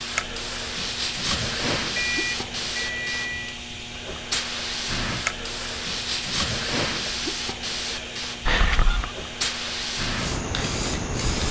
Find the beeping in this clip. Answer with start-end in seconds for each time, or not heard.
1.9-3.6, 8.4-9.2.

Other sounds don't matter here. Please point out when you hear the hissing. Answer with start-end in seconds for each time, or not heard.
0.0-11.4.